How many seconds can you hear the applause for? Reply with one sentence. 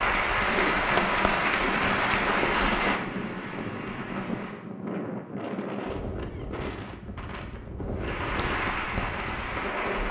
You can hear the applause for 7 seconds altogether.